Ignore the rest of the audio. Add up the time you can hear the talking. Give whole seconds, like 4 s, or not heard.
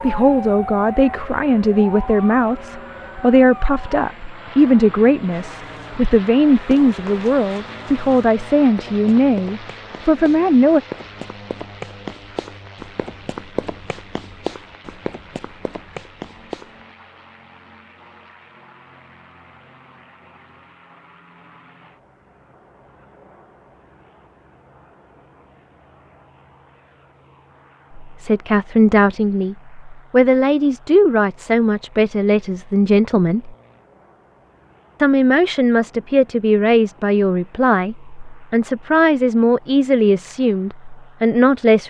23 s.